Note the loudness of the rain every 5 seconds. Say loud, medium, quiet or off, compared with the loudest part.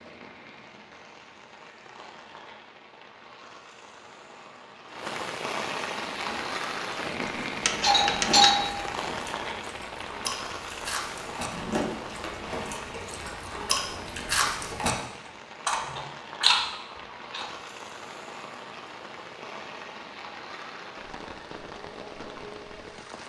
quiet, loud, medium, medium, medium.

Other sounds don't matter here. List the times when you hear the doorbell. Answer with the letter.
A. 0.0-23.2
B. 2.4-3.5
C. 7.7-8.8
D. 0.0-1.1
C.